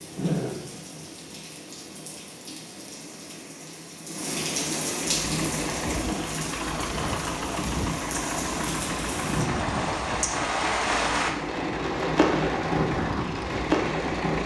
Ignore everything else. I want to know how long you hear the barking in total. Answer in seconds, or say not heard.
not heard.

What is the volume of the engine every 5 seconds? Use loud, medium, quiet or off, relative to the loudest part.
off, loud, loud.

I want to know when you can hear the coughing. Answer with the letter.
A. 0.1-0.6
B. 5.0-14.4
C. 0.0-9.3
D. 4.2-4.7
A.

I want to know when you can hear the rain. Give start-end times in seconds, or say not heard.
0.0-14.4.